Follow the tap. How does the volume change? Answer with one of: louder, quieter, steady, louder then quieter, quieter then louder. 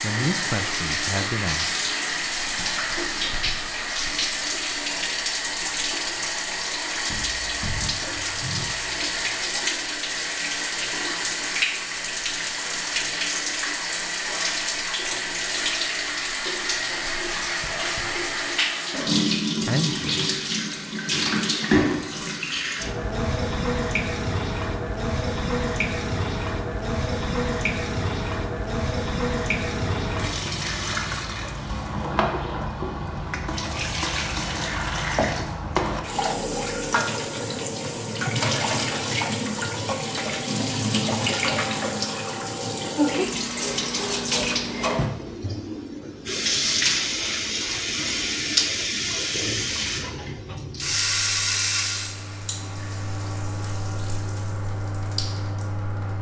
steady.